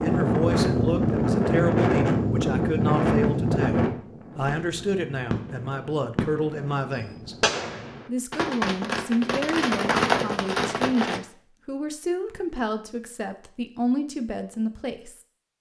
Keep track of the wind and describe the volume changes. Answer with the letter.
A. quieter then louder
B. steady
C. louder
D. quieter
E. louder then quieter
D.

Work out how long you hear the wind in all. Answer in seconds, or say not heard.
8 s.